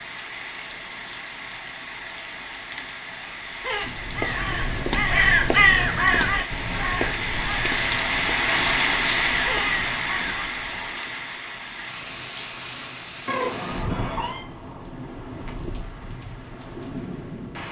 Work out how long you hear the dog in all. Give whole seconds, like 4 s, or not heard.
not heard.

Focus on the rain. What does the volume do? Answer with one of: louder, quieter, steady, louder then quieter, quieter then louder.
louder then quieter.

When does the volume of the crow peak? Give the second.
6 s.